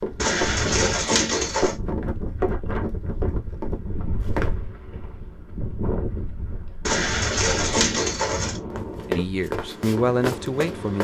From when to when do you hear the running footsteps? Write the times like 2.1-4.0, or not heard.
0.0-4.5, 8.7-10.9.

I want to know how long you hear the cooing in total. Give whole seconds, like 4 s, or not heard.
3 s.